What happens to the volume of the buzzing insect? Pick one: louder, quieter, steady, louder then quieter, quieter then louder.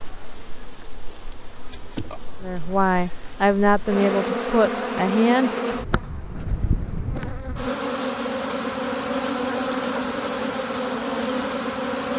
louder.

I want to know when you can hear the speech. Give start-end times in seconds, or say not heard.
2.4-5.8.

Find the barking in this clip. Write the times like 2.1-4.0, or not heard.
not heard.